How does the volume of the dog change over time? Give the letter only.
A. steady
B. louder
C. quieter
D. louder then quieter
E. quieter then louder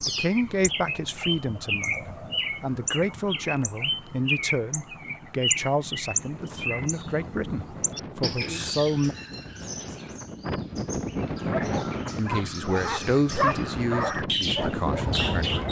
D.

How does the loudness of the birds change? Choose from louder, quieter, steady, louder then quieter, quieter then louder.
quieter then louder.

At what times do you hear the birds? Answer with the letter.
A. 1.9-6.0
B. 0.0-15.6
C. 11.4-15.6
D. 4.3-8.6
B.